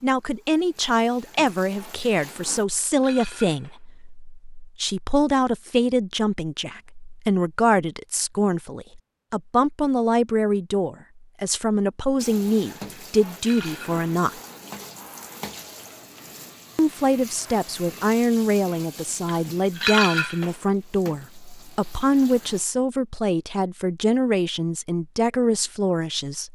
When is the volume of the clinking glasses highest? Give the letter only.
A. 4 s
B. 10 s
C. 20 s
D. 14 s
C.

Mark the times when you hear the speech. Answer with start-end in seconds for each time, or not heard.
0.0-14.3, 16.8-26.5.